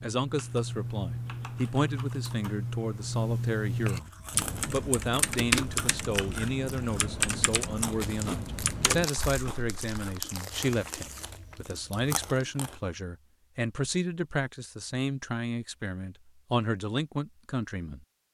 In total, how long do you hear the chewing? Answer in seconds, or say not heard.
9 s.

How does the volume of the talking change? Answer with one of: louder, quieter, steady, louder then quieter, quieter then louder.
steady.